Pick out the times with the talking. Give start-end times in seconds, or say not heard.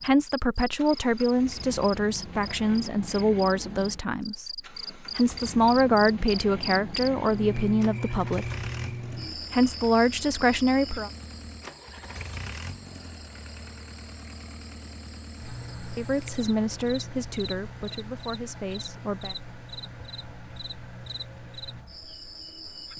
0.0-8.5, 9.5-11.1, 15.9-19.4.